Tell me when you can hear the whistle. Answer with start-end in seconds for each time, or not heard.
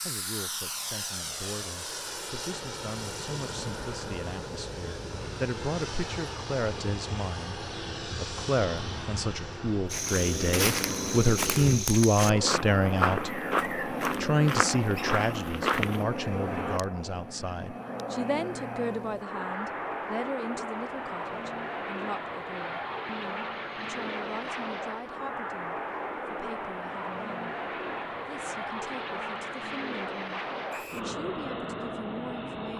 30.7-31.1.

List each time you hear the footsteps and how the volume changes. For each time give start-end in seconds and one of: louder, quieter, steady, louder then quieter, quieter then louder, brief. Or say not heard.
9.9-16.1 steady.